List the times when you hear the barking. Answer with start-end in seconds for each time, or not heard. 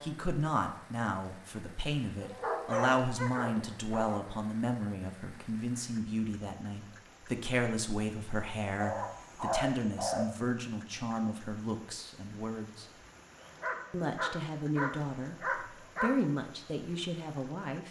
2.2-4.2, 8.8-10.3, 13.4-16.1.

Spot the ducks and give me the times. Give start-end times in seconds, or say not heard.
not heard.